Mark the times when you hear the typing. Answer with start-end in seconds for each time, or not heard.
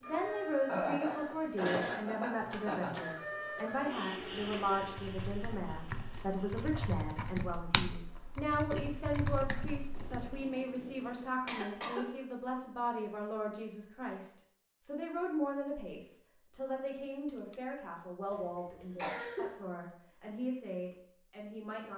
4.2-10.4.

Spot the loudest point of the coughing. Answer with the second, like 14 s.
1 s.